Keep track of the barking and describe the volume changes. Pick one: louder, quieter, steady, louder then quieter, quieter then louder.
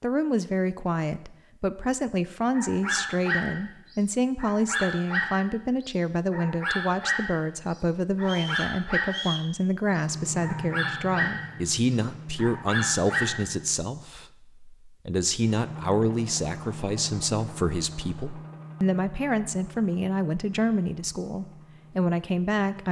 steady.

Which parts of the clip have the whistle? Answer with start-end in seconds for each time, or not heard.
8.2-9.5.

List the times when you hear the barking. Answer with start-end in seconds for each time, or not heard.
2.5-9.3, 9.9-13.6.